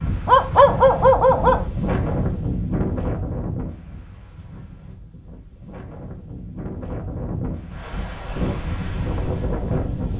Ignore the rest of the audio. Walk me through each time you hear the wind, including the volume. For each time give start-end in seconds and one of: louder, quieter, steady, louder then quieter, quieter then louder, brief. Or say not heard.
0.0-10.1 quieter then louder.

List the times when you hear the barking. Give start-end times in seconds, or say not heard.
0.2-1.7.